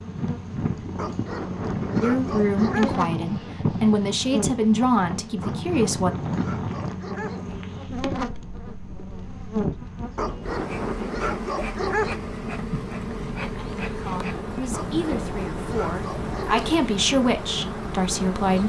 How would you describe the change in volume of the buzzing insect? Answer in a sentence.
The volume of the buzzing insect stays about the same.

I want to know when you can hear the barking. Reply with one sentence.
You can hear the barking from 0.9 to 3.0 s, from 5.4 to 7.5 s, from 10.2 to 12.2 s and from 14.7 to 16.8 s.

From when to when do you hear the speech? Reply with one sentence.
The speech can be heard from 2.0 to 6.2 s and from 14.1 to 18.6 s.